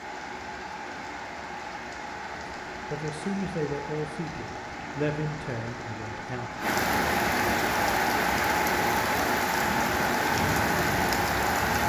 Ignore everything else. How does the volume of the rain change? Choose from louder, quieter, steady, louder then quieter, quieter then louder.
louder.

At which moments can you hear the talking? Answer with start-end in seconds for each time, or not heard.
2.9-6.5.